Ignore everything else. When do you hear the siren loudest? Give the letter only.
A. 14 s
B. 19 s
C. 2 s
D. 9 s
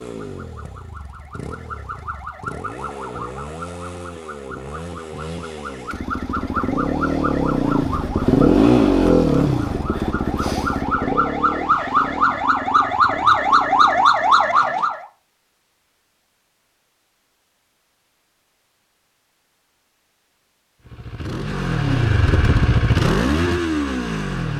A.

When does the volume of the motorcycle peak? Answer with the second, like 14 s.
9 s.